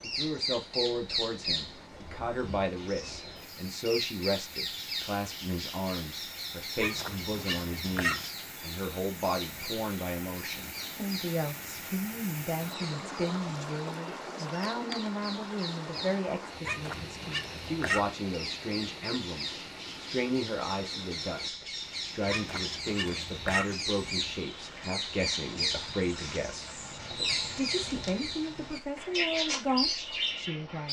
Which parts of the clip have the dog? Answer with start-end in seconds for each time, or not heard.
6.8-8.2, 16.6-18.1, 22.2-23.8.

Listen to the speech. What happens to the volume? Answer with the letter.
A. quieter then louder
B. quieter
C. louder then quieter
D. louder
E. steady
E.